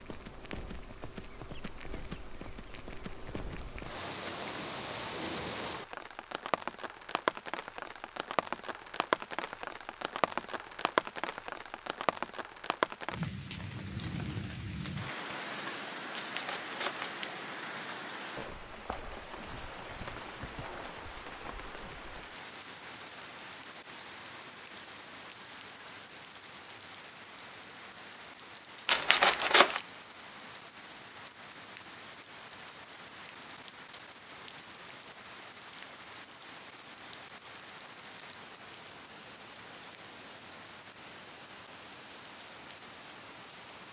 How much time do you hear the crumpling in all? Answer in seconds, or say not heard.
2 s.